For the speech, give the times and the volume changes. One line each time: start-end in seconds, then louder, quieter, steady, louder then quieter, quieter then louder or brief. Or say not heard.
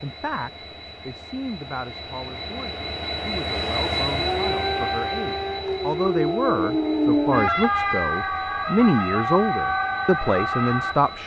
0.0-11.2 louder.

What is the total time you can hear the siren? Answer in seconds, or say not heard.
7 s.